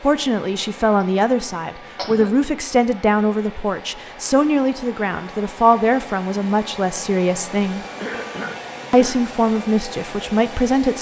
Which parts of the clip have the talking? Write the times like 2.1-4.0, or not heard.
0.0-7.8, 8.9-10.9.